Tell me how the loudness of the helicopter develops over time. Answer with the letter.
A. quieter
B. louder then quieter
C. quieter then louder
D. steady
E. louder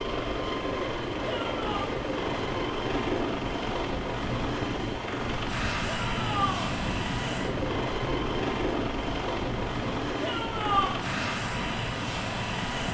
D.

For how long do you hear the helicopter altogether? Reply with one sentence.
The helicopter can be heard for 13 seconds in total.